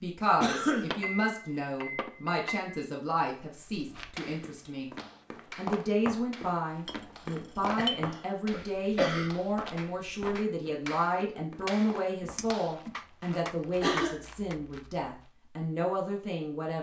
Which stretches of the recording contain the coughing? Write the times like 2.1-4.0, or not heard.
0.4-0.9, 7.8-9.3, 12.2-14.2.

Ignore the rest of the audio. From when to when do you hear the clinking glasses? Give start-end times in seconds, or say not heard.
0.9-2.8, 6.8-8.0, 12.3-12.9.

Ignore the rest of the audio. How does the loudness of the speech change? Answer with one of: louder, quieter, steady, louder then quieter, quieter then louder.
steady.